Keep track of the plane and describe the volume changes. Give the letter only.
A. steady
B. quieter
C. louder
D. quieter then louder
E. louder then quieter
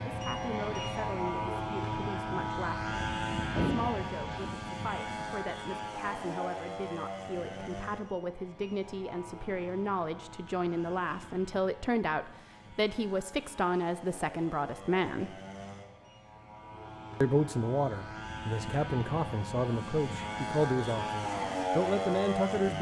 D.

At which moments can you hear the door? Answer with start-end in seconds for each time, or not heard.
3.5-4.5.